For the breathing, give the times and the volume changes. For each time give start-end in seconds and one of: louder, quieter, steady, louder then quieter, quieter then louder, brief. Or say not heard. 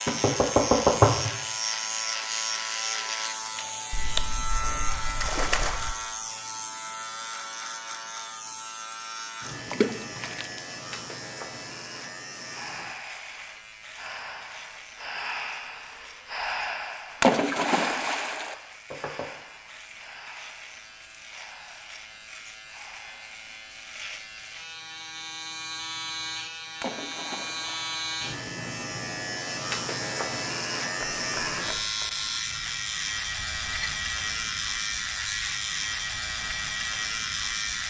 12.4-23.6 louder then quieter.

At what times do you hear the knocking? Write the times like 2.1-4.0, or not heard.
0.1-1.3, 18.9-19.3, 31.0-32.1.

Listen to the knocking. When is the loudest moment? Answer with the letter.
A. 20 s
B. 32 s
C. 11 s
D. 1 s
D.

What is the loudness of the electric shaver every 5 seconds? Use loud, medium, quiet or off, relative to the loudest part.
loud, medium, medium, quiet, quiet, loud, loud, loud.